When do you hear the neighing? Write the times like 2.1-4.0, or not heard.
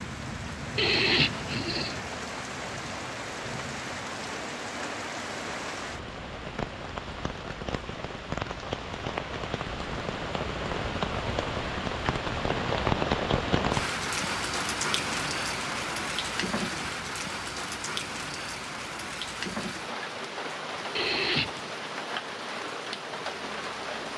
0.8-1.9, 20.9-21.7.